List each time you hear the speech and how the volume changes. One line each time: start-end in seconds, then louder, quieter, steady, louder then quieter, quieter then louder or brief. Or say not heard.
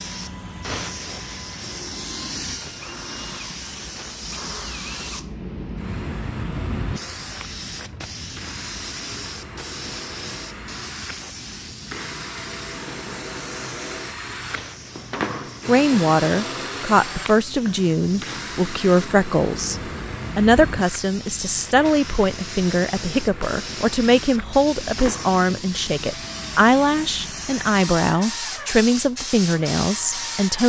15.7-30.6 steady.